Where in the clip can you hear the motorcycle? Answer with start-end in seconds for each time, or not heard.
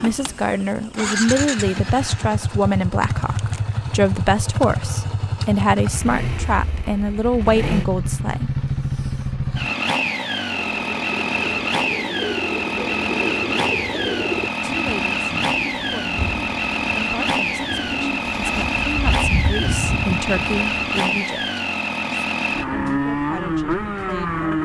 0.0-24.6.